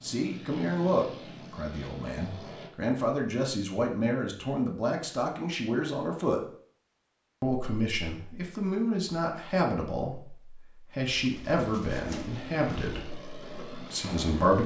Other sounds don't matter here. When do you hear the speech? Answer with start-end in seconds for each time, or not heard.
0.0-6.4, 7.4-14.6.